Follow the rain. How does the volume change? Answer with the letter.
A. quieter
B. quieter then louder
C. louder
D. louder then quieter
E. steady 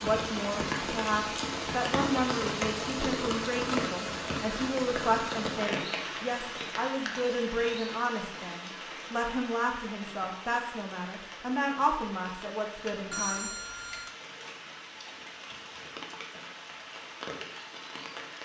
A.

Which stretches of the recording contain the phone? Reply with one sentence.
The phone can be heard from 13.1 to 14.2 s.